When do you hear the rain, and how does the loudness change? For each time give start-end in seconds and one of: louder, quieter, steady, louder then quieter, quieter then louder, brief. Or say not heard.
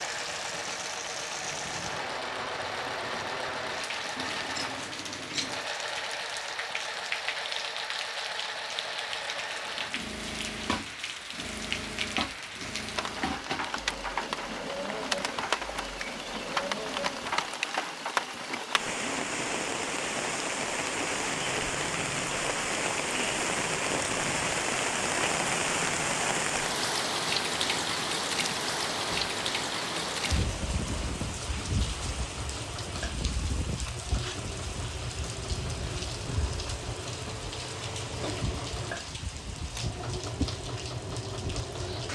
0.0-42.1 louder then quieter.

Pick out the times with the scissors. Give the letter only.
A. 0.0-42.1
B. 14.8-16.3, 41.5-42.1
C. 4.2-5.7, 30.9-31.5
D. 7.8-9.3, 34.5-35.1
C.